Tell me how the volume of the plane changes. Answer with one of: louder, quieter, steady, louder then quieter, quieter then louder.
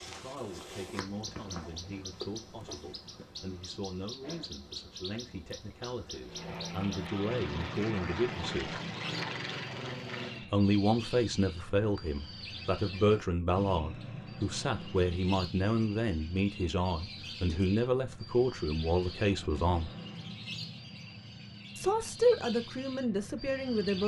steady.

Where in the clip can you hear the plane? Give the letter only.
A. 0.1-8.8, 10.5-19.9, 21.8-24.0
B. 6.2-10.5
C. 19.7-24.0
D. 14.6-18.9
B.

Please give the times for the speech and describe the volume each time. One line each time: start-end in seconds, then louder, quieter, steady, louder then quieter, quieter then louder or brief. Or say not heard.
0.1-8.8 louder
10.5-19.9 steady
21.8-24.0 brief.